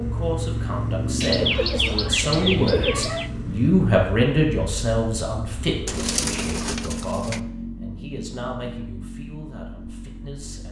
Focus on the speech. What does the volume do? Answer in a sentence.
The volume of the speech goes up, then down.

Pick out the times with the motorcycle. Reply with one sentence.
The motorcycle can be heard from 0.0 to 10.6 s.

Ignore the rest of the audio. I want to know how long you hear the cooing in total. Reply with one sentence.
The cooing can be heard for 4 seconds in total.